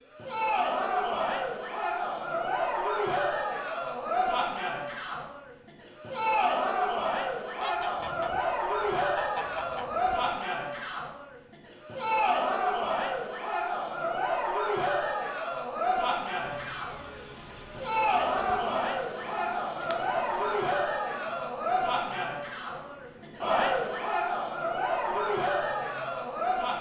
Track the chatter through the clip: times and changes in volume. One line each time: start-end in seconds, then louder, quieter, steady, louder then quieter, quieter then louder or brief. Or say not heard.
0.1-26.7 steady.